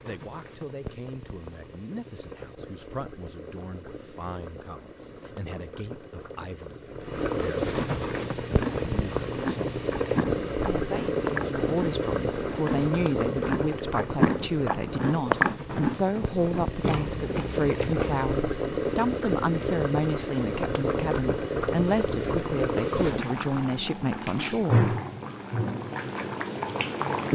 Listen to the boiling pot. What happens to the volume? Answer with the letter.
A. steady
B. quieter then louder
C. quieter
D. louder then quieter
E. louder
E.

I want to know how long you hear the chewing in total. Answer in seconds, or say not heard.
10 s.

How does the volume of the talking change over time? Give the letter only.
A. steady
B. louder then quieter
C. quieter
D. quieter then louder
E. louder
E.